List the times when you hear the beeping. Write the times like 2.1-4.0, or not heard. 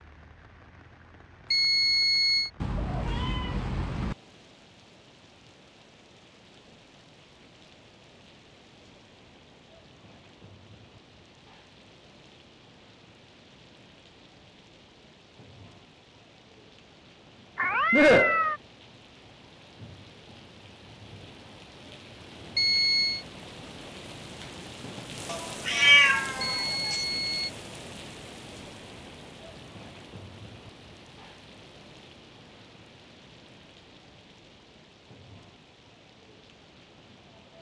1.5-2.5, 22.6-23.2, 26.4-27.5.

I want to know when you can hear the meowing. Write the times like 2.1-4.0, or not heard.
2.6-4.2, 17.6-18.6, 25.3-26.9.